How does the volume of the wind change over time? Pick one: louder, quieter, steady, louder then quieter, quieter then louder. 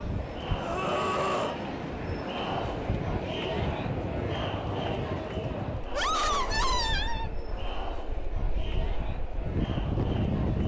quieter then louder.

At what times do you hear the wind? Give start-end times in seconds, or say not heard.
0.0-10.6.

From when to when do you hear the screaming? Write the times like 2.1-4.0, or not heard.
0.6-1.6, 5.9-7.3.